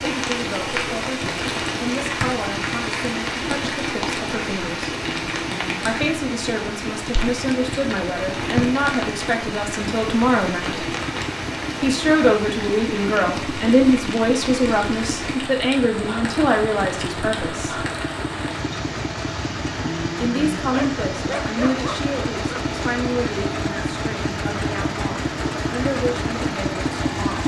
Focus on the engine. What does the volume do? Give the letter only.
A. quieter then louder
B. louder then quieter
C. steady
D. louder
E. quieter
D.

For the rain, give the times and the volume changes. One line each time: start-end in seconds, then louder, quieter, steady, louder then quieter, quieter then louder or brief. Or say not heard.
0.0-27.4 quieter.